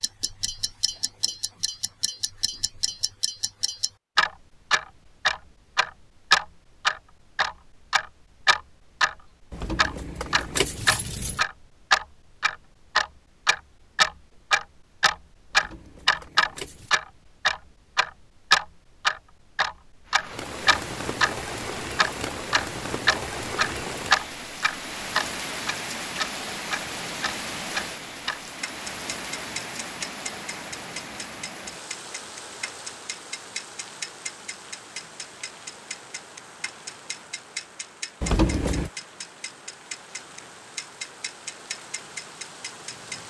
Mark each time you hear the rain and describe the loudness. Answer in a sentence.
The rain can be heard from 20.1 to 43.2 s, getting quieter.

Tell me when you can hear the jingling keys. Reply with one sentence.
The jingling keys can be heard from 9.5 to 11.4 s, from 15.5 to 16.9 s and from 38.2 to 38.9 s.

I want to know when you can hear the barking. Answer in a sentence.
You can't hear the barking here.